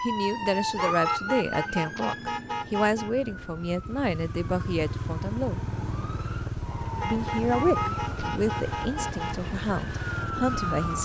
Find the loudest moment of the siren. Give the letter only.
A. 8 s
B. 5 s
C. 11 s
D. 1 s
D.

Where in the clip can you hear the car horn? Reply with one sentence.
You can hear the car horn from 0.8 to 3.1 s and from 7.0 to 9.5 s.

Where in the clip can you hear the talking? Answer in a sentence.
The talking can be heard from 0.0 to 5.6 s and from 7.0 to 11.0 s.